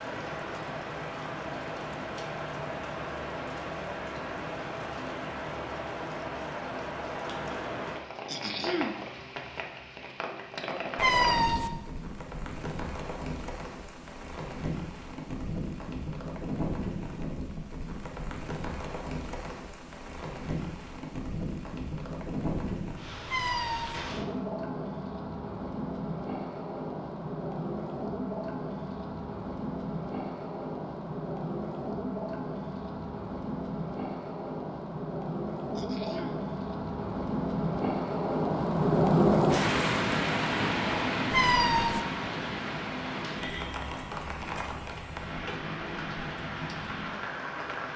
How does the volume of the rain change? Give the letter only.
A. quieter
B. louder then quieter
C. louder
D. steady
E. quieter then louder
C.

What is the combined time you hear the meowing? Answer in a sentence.
The meowing can be heard for 2 seconds in total.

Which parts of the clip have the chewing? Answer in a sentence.
The chewing can't be heard in this clip.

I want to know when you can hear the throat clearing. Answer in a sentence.
The throat clearing can be heard from 8.2 to 8.9 s and from 35.8 to 36.4 s.